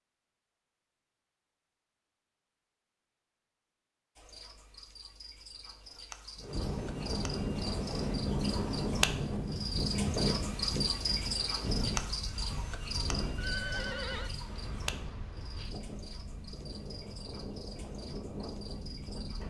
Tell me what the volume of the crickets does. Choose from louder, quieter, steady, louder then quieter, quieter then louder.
louder then quieter.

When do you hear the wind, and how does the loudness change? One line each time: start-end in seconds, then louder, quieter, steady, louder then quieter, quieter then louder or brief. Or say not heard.
6.3-19.4 quieter.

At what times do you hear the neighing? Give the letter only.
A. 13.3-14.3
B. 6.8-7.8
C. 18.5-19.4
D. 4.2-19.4
A.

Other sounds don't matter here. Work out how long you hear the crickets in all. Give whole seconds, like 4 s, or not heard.
15 s.